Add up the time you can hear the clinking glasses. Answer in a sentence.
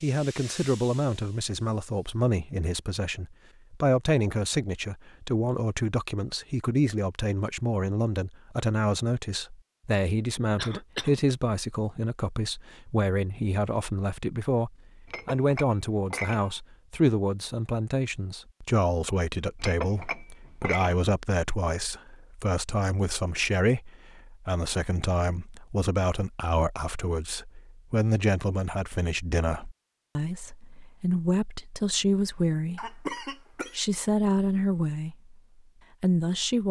You can hear the clinking glasses for 3 seconds altogether.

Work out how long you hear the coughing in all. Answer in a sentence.
The coughing can be heard for 2 seconds in total.